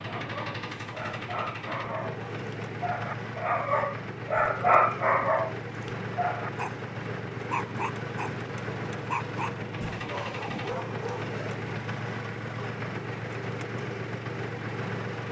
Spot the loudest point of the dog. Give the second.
5 s.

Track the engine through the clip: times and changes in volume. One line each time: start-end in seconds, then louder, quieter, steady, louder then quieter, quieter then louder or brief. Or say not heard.
0.0-15.2 steady.